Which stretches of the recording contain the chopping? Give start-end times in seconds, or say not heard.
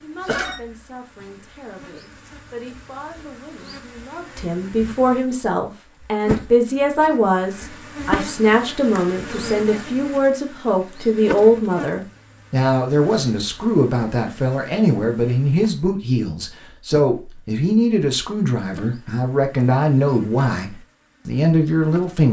not heard.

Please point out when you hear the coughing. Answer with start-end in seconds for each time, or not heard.
0.2-0.8.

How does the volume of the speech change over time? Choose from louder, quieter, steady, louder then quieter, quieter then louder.
louder.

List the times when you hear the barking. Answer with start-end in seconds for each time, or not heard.
not heard.